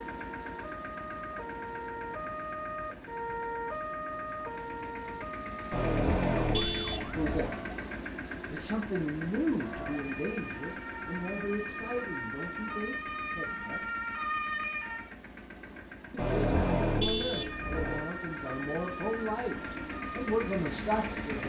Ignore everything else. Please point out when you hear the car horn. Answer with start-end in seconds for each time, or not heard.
5.7-7.5, 16.1-18.0.